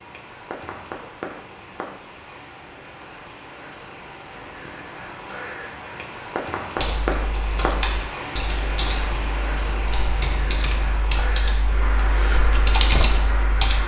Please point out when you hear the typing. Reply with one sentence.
The typing can be heard from 6.8 to 13.8 s.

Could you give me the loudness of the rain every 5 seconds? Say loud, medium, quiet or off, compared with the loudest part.
medium, loud, loud.